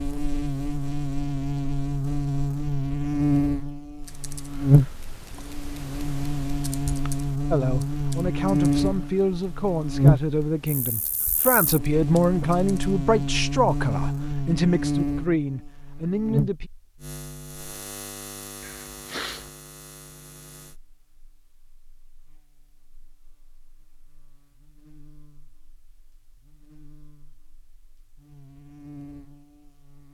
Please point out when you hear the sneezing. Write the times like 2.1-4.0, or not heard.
18.6-19.5.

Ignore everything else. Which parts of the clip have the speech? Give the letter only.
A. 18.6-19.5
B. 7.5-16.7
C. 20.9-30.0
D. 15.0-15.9
B.